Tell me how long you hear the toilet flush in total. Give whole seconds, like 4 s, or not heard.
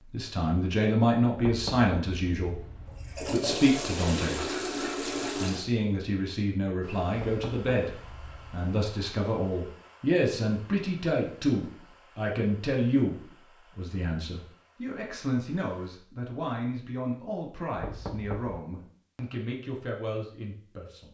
3 s.